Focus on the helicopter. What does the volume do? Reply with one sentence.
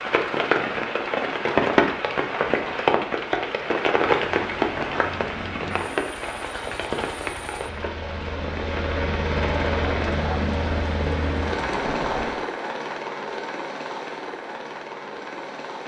The volume of the helicopter goes up, then down.